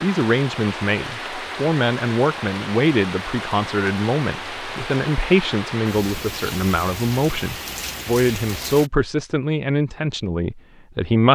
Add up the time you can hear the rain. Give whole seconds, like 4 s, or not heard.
9 s.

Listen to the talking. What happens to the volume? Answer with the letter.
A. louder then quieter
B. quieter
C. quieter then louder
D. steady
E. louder
D.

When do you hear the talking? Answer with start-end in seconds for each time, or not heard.
0.0-11.3.